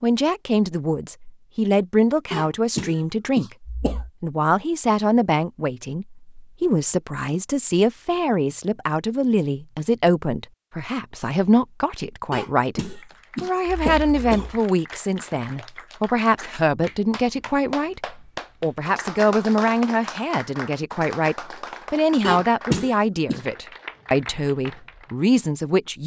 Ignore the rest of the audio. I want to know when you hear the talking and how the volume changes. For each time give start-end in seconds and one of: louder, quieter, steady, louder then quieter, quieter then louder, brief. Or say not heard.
0.0-26.0 steady.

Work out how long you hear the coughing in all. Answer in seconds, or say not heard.
5 s.